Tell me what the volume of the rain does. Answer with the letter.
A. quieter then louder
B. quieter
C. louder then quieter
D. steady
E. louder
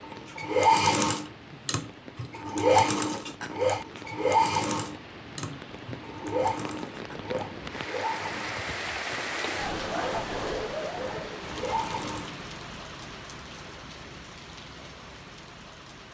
C.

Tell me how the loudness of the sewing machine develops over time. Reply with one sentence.
The loudness of the sewing machine goes down.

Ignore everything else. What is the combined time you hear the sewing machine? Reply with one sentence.
You can hear the sewing machine for 12 seconds altogether.